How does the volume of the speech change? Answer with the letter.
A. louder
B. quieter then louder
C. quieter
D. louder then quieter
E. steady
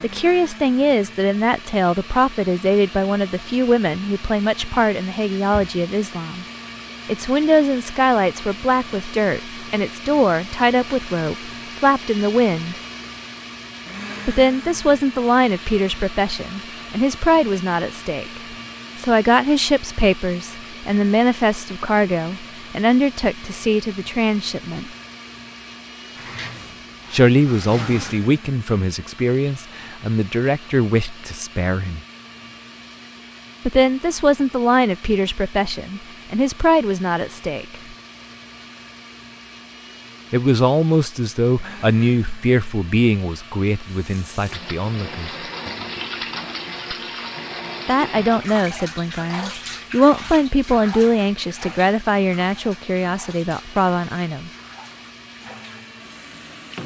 E.